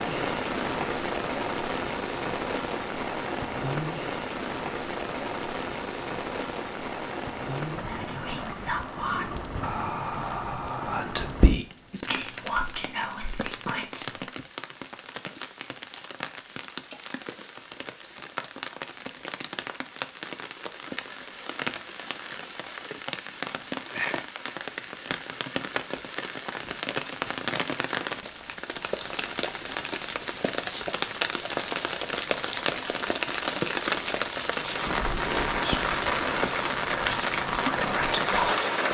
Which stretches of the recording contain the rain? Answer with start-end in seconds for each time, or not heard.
0.0-38.8.